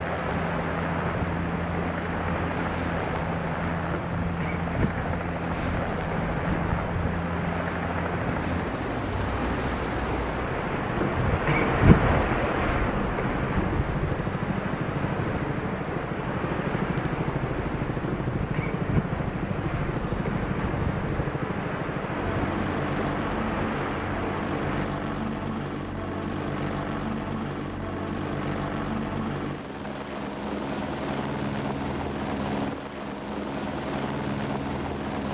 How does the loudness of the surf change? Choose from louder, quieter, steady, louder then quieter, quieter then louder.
louder then quieter.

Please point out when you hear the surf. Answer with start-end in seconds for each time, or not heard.
0.0-24.9.